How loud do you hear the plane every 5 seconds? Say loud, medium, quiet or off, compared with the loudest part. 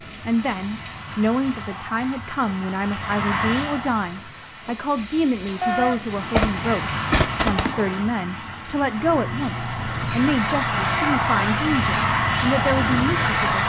medium, medium, loud.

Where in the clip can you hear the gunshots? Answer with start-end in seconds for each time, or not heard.
5.6-8.1.